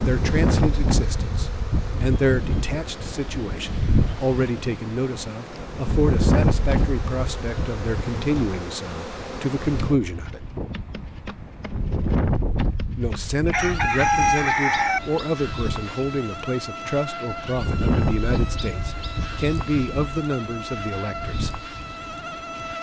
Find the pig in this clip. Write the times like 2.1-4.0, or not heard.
not heard.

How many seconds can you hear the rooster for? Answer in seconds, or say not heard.
2 s.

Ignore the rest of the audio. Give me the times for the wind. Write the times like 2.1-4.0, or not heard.
0.0-22.7.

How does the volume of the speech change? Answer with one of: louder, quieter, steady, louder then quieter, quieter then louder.
steady.